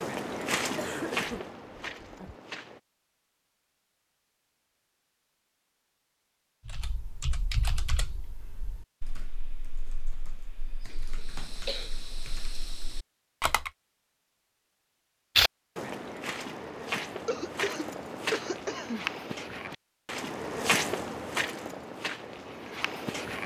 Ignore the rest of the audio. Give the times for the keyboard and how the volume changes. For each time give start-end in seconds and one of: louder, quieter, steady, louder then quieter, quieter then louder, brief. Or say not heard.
6.7-13.7 quieter then louder.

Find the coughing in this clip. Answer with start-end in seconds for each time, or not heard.
0.8-2.4, 10.9-11.9, 17.2-19.1.